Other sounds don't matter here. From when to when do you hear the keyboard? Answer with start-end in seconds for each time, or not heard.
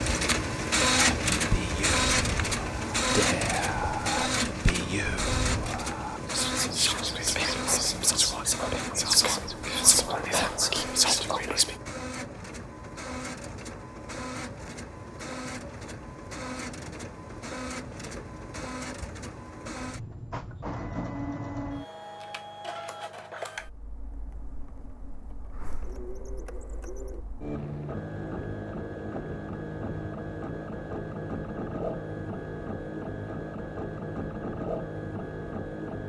not heard.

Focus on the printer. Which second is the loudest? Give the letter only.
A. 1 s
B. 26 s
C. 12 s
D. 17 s
A.